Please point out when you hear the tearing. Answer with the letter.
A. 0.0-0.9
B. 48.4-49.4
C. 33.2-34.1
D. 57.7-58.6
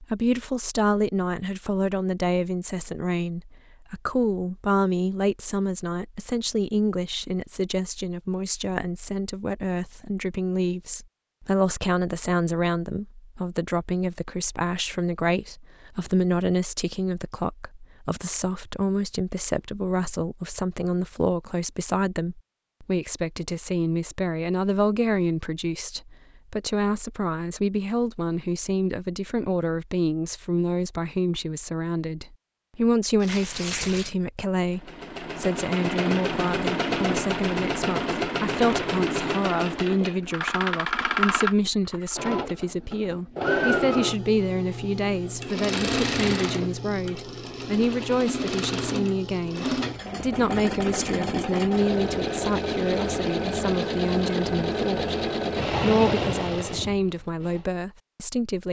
C.